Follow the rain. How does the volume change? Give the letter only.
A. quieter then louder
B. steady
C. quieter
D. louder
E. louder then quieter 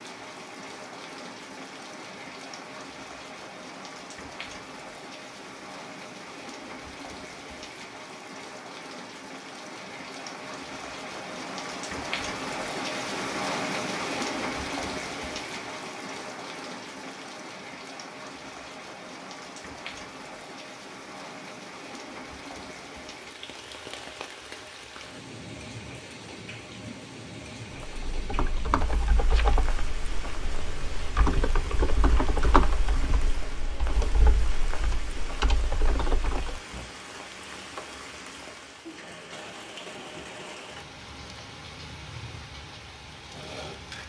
E.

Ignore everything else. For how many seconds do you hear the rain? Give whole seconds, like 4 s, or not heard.
44 s.